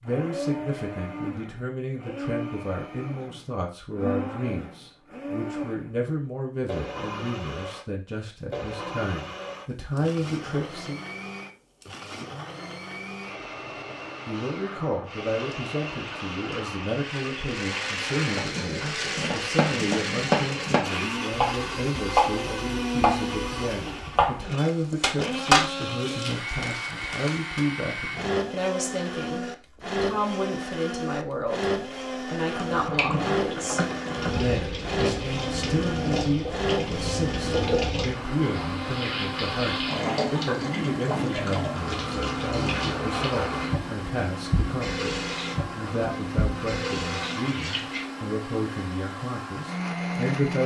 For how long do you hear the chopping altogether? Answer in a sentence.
The chopping can be heard for 9 seconds in total.